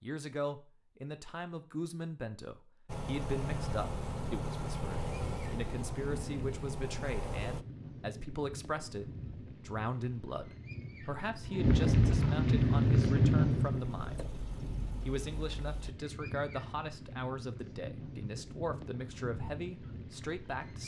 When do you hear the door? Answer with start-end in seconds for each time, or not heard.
not heard.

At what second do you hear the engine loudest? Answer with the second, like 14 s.
5 s.